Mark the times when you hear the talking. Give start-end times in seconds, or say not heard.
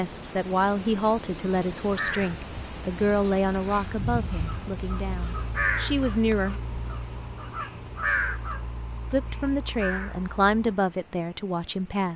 0.0-6.6, 9.1-12.1.